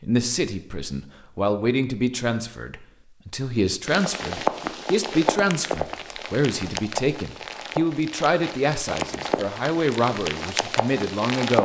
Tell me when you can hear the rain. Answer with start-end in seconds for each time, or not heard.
3.9-11.6.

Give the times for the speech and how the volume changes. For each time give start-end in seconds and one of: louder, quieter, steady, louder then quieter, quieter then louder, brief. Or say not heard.
0.0-11.6 steady.